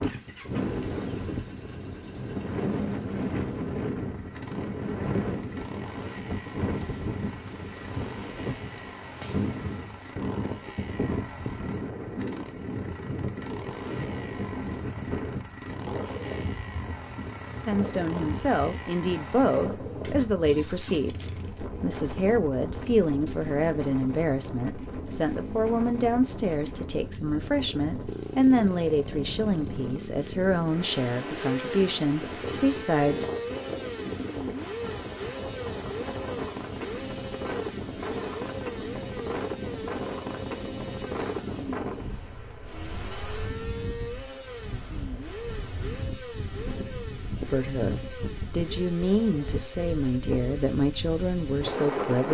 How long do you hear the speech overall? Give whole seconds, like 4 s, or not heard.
20 s.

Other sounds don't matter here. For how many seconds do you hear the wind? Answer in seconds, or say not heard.
52 s.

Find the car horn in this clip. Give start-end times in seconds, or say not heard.
not heard.